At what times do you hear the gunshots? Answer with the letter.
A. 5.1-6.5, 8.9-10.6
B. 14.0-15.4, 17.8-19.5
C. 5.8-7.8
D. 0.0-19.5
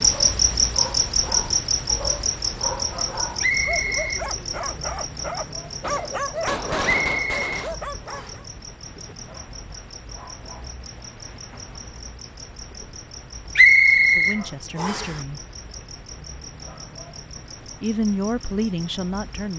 C.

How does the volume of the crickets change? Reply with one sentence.
The volume of the crickets goes down.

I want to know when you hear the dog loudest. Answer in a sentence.
The loudest moment of the dog is at 6 seconds.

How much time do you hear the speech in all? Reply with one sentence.
You can hear the speech for 3 seconds altogether.